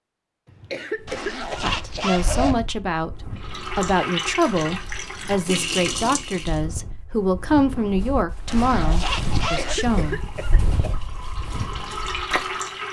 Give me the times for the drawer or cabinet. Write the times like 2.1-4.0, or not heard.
not heard.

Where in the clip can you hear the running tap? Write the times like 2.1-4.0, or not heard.
3.4-6.6, 9.1-12.8.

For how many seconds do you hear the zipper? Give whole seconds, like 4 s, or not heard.
3 s.